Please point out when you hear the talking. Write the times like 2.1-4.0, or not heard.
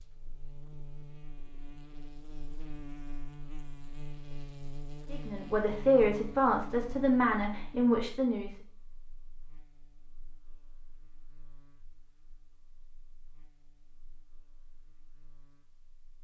5.1-8.6.